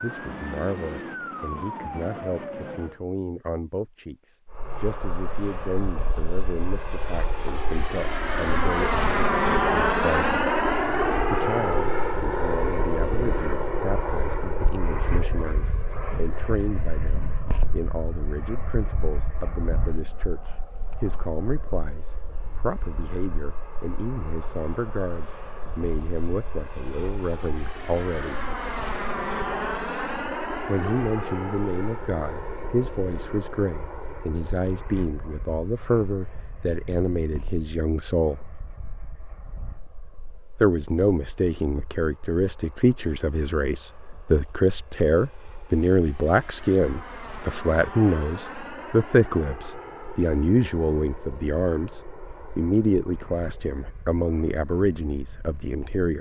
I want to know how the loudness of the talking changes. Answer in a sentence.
The loudness of the talking goes up.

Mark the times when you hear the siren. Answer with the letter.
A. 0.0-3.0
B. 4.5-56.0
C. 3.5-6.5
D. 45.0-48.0
A.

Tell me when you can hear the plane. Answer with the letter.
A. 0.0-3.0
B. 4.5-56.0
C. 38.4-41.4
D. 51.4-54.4
B.